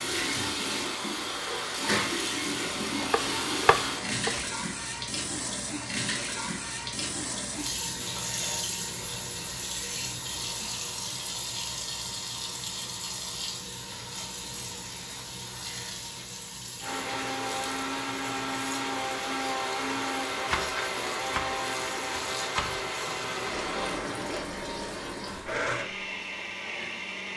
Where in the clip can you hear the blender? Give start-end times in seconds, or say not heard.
0.0-4.2, 16.8-27.3.